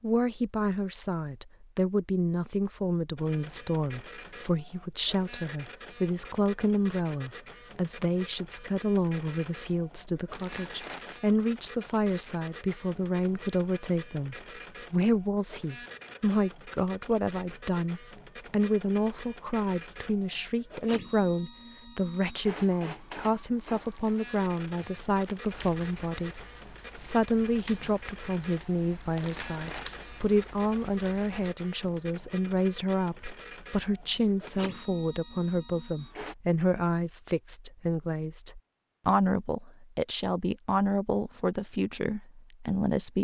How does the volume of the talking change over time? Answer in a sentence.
The volume of the talking stays about the same.